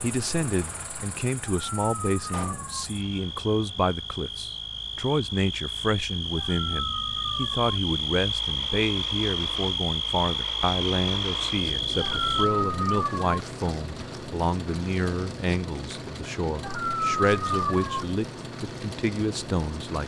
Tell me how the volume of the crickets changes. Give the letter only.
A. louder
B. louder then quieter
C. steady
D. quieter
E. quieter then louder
A.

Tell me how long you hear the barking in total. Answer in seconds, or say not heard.
6 s.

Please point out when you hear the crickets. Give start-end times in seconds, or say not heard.
0.0-12.5.